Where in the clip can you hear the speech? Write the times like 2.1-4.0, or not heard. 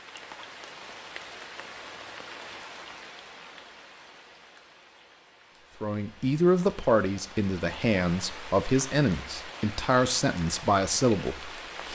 5.8-11.8.